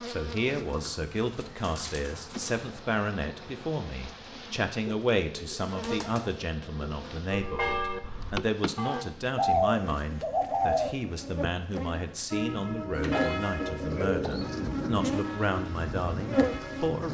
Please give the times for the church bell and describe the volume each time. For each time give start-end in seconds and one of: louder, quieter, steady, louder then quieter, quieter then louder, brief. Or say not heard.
7.2-9.1 brief
12.3-17.0 quieter.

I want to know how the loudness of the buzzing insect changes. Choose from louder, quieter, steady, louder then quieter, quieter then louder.
louder.